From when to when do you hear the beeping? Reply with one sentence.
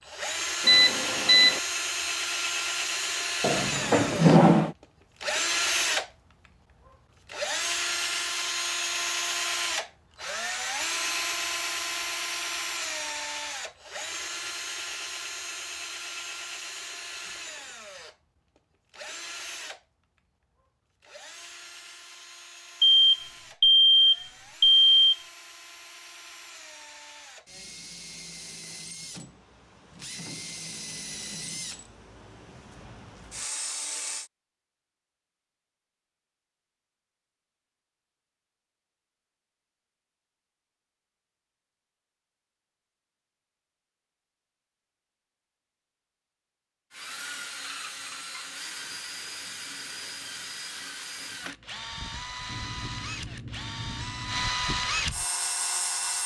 The beeping can be heard from 0.7 to 1.6 s, from 22.8 to 25.1 s and from 52.5 to 54.5 s.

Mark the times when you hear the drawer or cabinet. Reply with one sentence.
The drawer or cabinet can be heard from 3.4 to 4.8 s.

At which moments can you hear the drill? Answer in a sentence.
You can hear the drill from 0.0 to 34.3 s and from 46.9 to 56.2 s.